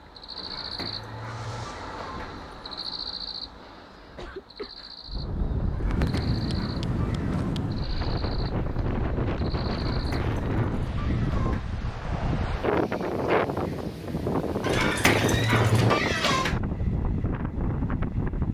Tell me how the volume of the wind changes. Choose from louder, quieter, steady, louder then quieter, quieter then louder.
steady.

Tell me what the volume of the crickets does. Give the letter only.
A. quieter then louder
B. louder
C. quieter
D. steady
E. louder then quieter
C.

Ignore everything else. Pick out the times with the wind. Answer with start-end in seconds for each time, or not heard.
5.0-18.4.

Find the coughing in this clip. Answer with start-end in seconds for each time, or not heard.
4.2-5.0.